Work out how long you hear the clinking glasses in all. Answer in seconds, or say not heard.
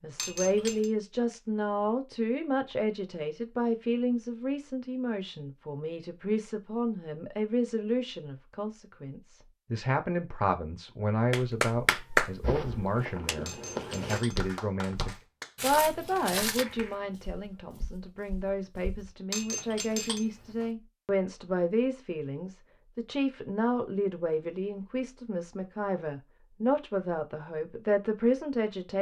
3 s.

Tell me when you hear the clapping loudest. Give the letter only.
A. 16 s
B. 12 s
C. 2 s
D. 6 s
B.